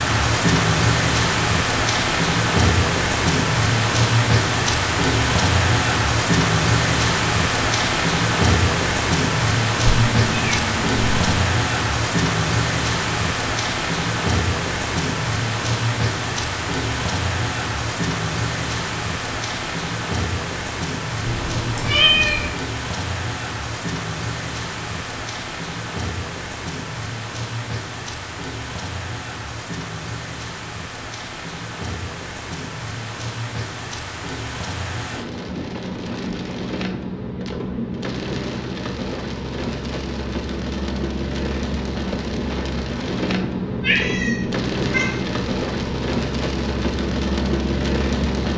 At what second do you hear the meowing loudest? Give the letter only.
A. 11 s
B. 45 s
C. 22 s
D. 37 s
C.